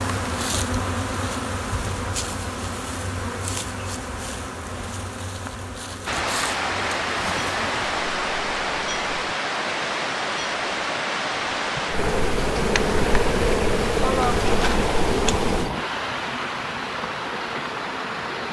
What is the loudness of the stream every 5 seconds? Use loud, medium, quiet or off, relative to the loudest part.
off, loud, loud, loud.